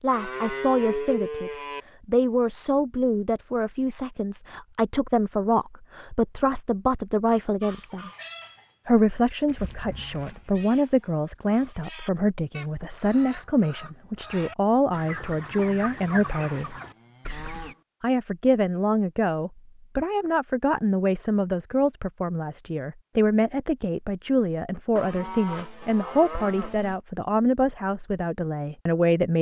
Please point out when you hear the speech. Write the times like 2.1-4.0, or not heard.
0.0-8.1, 8.8-16.8, 18.0-29.3.